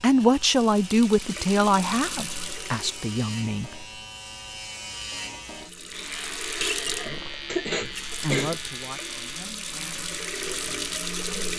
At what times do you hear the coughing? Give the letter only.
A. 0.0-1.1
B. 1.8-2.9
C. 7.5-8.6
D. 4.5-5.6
C.